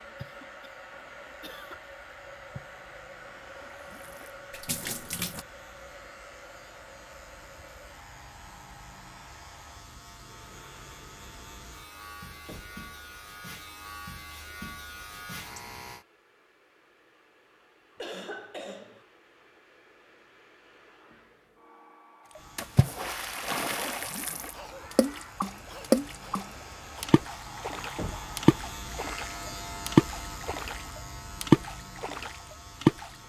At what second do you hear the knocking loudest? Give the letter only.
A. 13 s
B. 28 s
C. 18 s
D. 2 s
B.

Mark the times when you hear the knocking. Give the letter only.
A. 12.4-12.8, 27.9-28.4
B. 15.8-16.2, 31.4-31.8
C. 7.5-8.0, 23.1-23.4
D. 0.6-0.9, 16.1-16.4
A.